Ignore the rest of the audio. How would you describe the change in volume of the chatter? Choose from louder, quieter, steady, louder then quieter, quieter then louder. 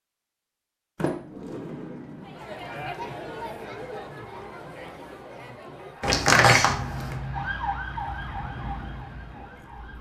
quieter.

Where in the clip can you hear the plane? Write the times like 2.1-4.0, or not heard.
not heard.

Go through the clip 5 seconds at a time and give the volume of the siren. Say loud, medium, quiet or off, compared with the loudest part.
off, loud.